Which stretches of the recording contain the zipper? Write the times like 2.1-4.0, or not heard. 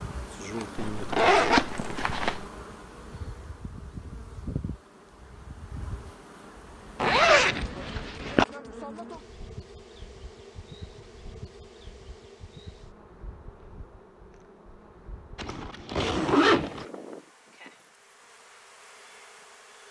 0.8-2.4, 7.0-8.4, 15.3-16.9.